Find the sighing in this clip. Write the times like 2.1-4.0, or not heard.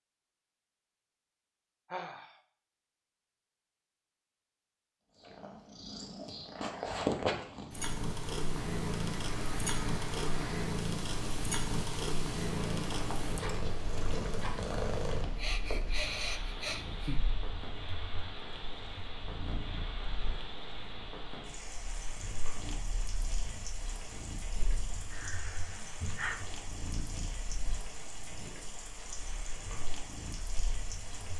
1.9-2.4, 15.2-17.2, 25.1-26.4.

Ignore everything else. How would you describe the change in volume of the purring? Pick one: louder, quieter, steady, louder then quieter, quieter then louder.
quieter.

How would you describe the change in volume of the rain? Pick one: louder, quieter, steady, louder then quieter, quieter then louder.
steady.